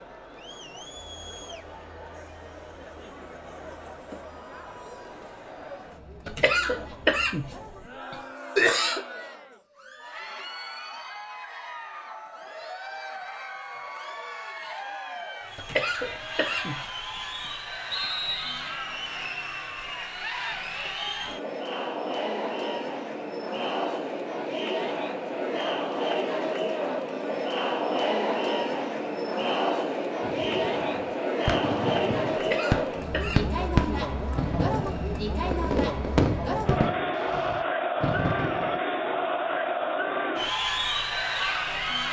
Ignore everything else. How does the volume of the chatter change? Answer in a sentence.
The volume of the chatter goes up.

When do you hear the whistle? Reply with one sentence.
The whistle can be heard from 17.9 to 18.8 s.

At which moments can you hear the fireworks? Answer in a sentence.
You can hear the fireworks from 30.2 to 38.8 s.